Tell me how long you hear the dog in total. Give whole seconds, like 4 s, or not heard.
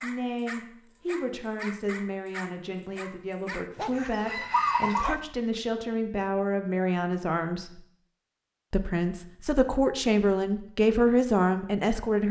5 s.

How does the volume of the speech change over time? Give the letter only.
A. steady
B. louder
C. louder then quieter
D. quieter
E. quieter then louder
B.